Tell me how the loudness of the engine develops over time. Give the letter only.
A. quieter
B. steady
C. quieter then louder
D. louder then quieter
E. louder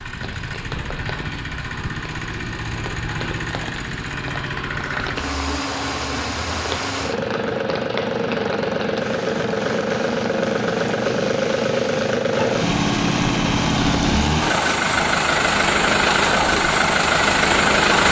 E.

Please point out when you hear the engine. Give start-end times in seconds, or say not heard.
0.0-18.0.